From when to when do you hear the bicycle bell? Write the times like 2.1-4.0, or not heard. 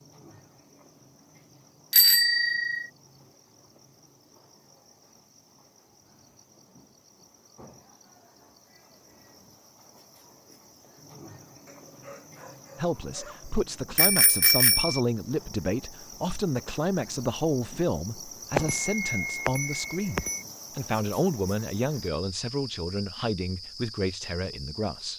1.9-2.9, 13.9-15.0, 18.6-20.4.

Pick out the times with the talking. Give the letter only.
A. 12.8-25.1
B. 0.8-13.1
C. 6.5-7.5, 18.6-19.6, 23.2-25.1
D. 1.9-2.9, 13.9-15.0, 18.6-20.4
A.